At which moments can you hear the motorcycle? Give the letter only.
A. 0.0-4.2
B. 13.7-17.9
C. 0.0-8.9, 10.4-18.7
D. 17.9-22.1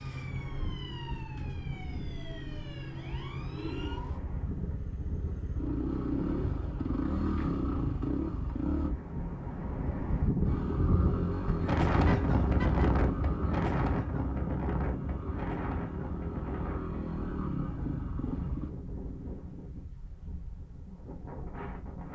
C.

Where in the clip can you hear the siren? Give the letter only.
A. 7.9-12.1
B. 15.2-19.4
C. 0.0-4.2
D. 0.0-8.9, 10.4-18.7
C.